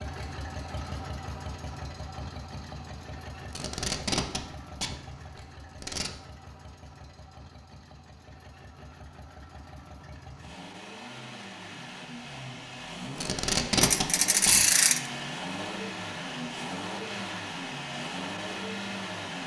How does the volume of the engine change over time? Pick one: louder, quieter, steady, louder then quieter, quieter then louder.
quieter then louder.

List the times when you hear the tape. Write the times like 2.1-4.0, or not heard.
3.5-6.1, 13.2-14.7.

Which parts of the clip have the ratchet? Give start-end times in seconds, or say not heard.
13.8-15.1.